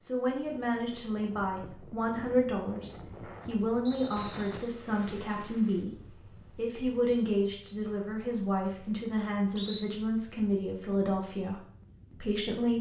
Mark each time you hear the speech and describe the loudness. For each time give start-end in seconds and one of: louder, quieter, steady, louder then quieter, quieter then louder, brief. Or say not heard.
0.0-12.7 steady.